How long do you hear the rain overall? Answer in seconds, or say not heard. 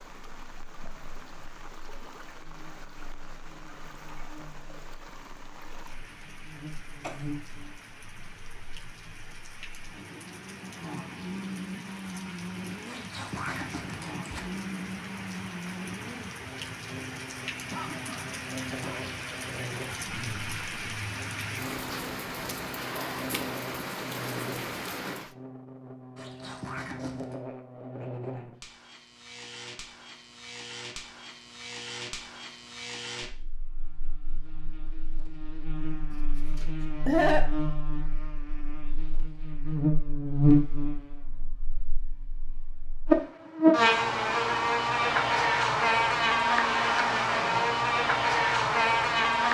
25 s.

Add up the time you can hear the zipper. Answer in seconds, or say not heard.
3 s.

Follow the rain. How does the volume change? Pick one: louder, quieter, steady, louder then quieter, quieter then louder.
louder.